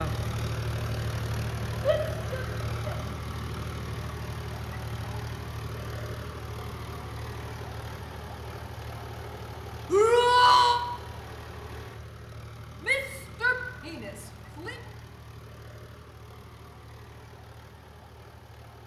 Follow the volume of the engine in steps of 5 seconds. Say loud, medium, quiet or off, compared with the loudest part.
loud, medium, medium, quiet.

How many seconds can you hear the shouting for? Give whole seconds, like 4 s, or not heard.
4 s.